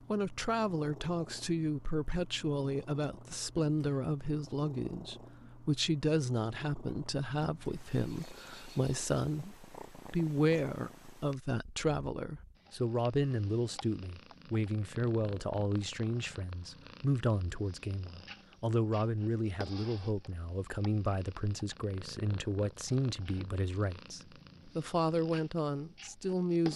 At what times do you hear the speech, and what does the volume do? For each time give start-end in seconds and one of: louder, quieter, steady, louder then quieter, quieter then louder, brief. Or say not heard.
0.1-26.7 steady.